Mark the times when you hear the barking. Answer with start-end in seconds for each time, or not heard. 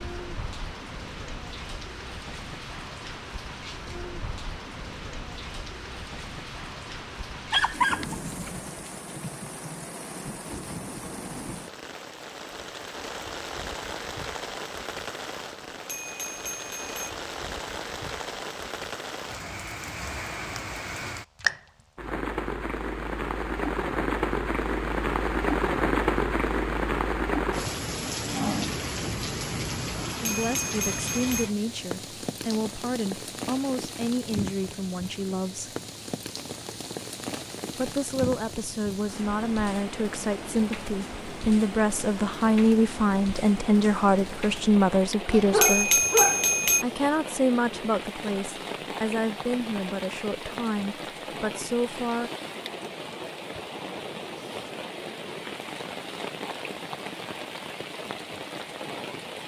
7.5-8.9, 45.2-46.5.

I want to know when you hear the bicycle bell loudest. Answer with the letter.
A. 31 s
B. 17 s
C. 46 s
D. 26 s
C.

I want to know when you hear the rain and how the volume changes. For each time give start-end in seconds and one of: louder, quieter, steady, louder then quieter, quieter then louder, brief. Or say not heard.
0.0-59.4 louder then quieter.